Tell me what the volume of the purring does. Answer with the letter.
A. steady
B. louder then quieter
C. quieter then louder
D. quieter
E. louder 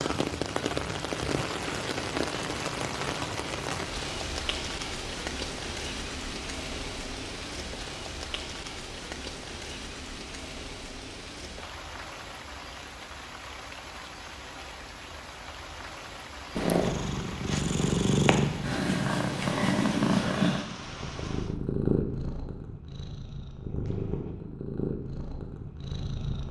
D.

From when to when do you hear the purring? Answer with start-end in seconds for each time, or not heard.
16.6-26.4.